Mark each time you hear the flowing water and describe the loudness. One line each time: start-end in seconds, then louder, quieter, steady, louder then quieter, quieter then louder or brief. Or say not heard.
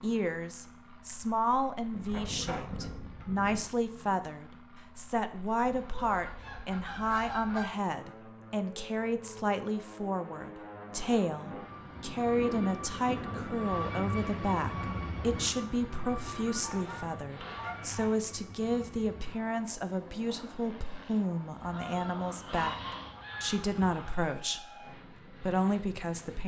not heard.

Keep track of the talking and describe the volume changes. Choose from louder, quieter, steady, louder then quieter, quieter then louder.
steady.